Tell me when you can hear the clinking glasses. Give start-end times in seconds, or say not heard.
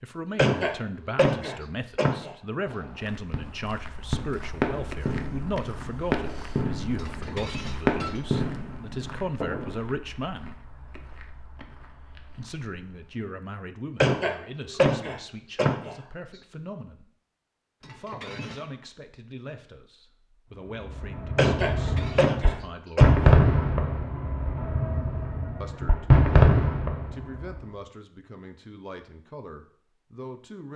7.0-8.2, 17.8-18.8, 21.8-22.2.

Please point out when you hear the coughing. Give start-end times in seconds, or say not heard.
0.3-2.3, 14.0-15.9, 21.4-23.4.